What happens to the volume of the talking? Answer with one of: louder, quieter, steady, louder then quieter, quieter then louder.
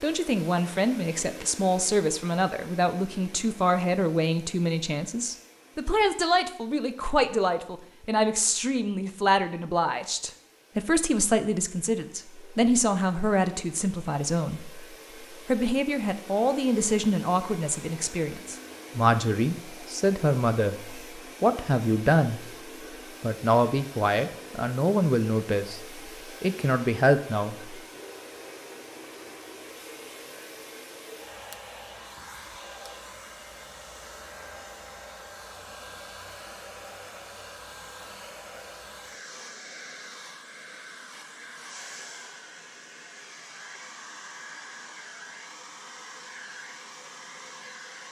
steady.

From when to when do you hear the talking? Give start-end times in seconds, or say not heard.
0.0-22.4, 23.2-27.8.